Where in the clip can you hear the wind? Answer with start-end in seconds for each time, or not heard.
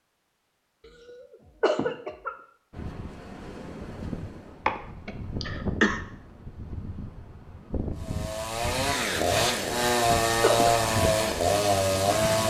2.7-12.4.